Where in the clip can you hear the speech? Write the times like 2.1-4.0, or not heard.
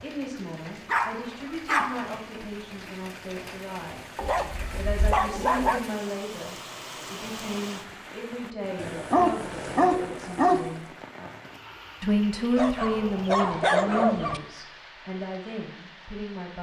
0.0-4.2, 4.8-10.8, 12.0-16.5.